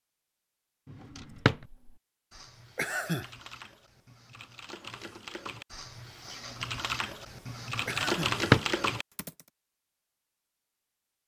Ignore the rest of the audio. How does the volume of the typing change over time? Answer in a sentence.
The loudness of the typing goes up.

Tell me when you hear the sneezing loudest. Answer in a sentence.
The loudest moment of the sneezing is at 3 seconds.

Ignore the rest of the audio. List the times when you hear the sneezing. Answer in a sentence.
The sneezing can be heard from 2.8 to 3.3 s and from 7.8 to 8.4 s.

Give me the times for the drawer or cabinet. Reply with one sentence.
You can hear the drawer or cabinet from 0.9 to 1.6 s and from 8.0 to 8.7 s.